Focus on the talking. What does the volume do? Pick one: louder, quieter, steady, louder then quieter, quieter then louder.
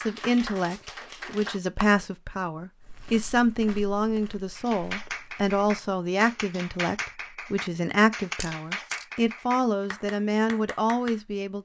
steady.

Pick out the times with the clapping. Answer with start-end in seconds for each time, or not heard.
0.0-1.6, 4.5-11.2.